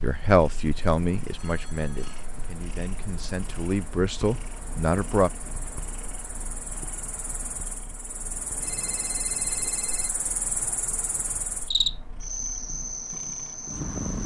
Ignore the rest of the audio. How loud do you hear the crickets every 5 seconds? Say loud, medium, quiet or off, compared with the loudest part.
quiet, medium, loud.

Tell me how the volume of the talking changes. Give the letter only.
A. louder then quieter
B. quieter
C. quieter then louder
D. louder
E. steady
C.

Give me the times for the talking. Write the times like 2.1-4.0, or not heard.
0.0-5.3.